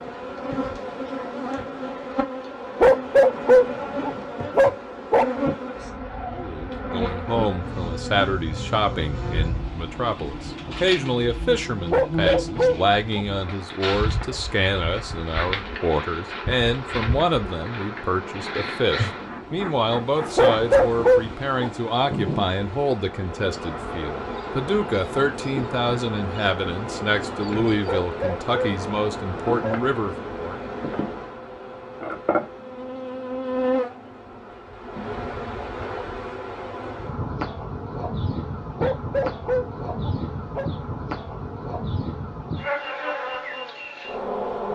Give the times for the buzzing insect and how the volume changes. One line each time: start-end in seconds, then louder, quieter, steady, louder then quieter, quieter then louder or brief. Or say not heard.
0.0-44.7 steady.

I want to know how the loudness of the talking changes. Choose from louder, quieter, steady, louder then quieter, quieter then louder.
steady.